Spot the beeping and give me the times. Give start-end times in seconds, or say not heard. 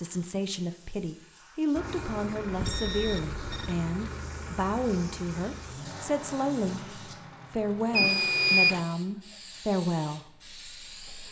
2.5-3.8, 7.9-8.8.